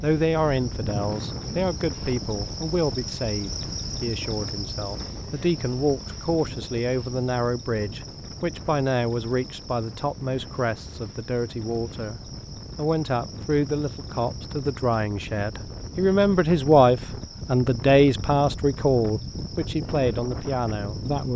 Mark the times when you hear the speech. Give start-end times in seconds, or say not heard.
0.0-21.3.